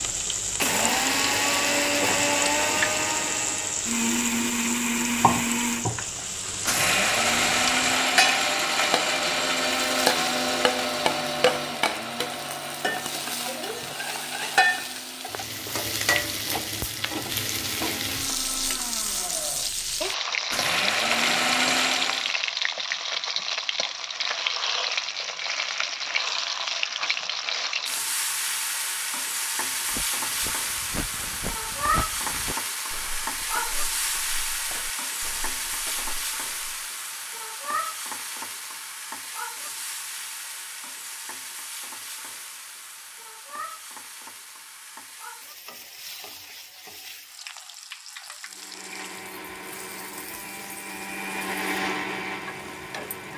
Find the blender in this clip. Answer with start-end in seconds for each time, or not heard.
0.0-22.4, 48.5-53.3.